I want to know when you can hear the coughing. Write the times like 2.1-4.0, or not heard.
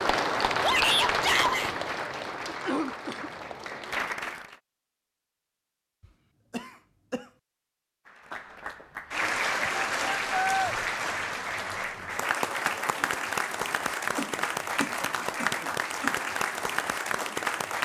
2.5-3.3, 6.0-7.3, 14.2-16.1.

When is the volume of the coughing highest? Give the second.
3 s.